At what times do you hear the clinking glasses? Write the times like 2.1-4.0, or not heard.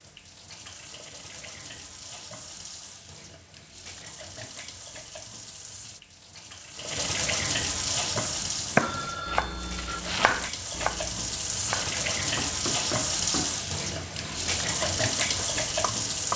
not heard.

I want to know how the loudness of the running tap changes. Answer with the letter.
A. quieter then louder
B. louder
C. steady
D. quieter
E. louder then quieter
B.